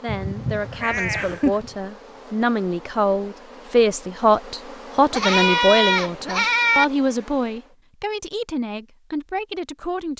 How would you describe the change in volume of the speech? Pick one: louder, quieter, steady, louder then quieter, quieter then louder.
louder then quieter.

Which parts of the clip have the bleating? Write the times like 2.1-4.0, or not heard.
0.1-1.7, 5.1-6.8.